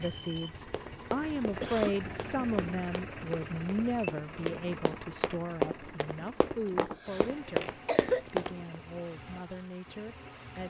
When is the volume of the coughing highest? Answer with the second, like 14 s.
8 s.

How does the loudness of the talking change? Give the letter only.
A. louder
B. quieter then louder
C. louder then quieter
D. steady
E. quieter
E.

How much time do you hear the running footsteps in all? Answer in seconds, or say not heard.
8 s.